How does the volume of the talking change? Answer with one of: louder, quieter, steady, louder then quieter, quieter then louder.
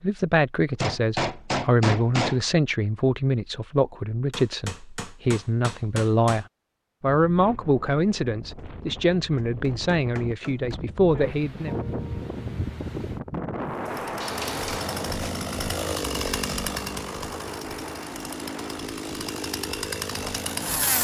steady.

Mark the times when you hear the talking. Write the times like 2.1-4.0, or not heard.
0.0-11.8.